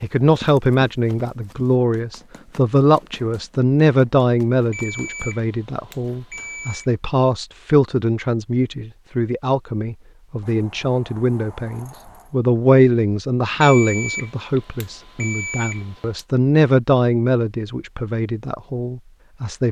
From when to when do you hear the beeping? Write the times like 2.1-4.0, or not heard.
4.7-6.9, 13.6-16.2.